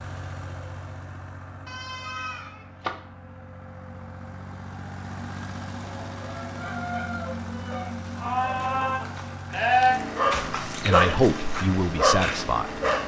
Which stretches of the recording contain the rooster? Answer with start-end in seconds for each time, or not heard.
5.8-7.8.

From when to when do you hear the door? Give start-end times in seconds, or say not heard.
not heard.